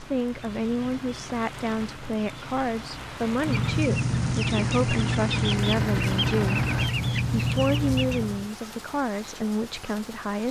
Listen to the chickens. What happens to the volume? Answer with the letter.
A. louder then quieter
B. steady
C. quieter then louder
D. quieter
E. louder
E.